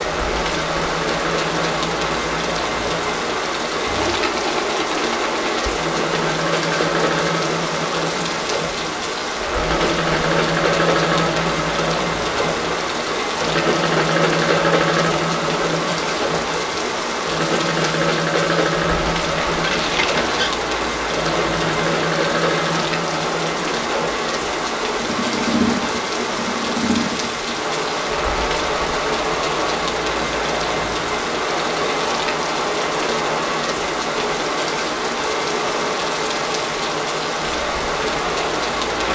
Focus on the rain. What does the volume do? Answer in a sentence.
The loudness of the rain stays about the same.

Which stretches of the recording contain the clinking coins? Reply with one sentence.
The clinking coins can be heard from 19.5 to 20.5 s.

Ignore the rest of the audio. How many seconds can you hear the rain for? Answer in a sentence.
The rain can be heard for 39 seconds in total.